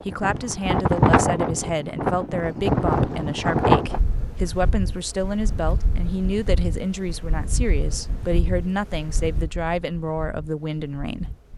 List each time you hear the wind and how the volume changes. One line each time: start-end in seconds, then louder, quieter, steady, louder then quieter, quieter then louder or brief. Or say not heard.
0.0-11.5 quieter.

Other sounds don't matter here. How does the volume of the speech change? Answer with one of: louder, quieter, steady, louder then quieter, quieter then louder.
steady.